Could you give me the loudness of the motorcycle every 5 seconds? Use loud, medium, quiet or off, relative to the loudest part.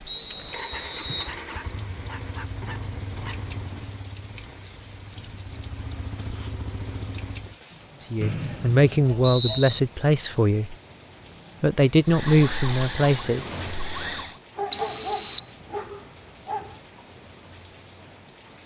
loud, loud, off, off.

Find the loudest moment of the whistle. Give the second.
15 s.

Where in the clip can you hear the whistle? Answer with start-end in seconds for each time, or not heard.
0.1-1.4, 8.2-9.8, 14.7-15.5.